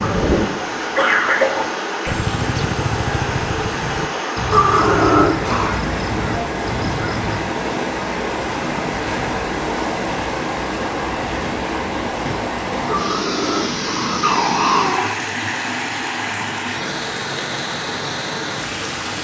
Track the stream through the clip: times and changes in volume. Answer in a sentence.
You can hear the stream from 0.0 to 19.1 s, at a steady volume.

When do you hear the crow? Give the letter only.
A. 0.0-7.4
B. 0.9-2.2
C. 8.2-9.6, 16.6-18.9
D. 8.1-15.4
A.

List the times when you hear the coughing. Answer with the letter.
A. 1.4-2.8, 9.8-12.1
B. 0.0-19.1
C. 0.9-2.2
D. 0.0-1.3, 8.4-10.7
C.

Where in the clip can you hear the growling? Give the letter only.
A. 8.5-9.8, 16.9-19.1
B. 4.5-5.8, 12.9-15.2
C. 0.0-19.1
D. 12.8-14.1
B.